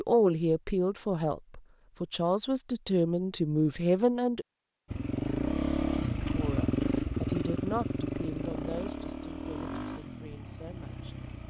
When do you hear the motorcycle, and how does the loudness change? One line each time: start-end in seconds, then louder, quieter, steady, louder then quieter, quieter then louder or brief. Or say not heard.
4.9-11.4 quieter.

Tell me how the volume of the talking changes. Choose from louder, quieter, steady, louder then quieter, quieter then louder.
quieter.